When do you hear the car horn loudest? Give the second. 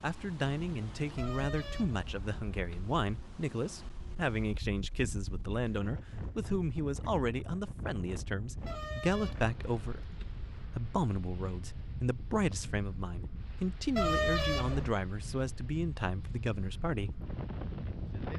14 s.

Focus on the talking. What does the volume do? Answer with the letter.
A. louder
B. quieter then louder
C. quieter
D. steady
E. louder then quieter
D.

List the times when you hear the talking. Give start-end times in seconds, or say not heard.
0.0-17.2.